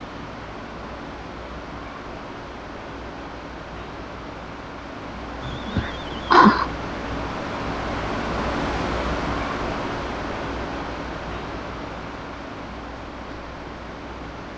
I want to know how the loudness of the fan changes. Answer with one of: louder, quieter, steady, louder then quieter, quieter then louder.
louder then quieter.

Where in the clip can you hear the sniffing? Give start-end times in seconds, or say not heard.
5.4-6.7.